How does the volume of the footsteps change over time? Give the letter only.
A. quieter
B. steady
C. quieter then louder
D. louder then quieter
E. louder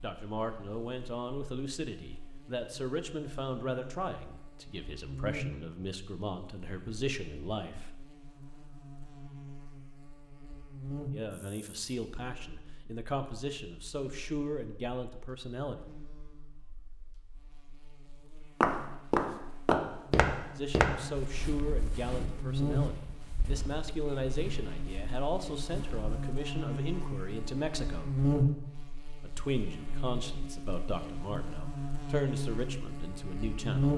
A.